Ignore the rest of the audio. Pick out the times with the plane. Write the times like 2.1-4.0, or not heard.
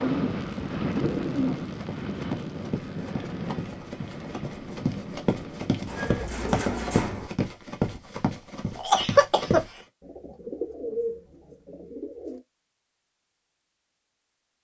0.0-6.2.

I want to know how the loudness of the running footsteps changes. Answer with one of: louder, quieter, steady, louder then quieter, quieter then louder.
louder.